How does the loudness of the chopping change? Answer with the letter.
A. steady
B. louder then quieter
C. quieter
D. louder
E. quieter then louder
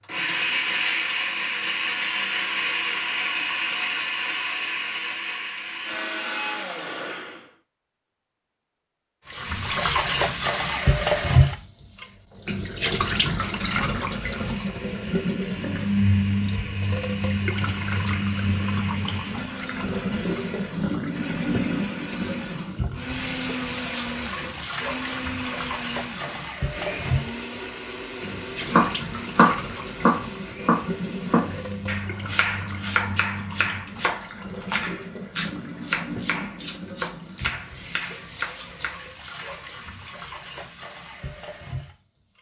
C.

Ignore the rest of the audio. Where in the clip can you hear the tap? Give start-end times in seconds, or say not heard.
9.2-42.3.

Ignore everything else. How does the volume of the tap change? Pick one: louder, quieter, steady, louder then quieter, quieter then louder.
quieter.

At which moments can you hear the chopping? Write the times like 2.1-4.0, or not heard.
28.6-39.3.